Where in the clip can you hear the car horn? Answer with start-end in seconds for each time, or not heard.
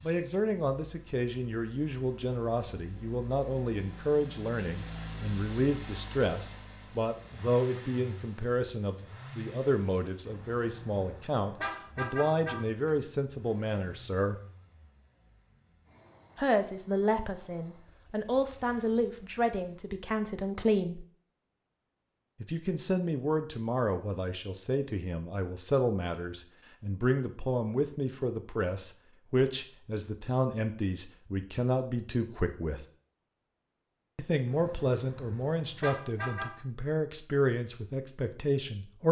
10.2-12.9, 34.5-36.5.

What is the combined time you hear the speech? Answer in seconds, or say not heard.
34 s.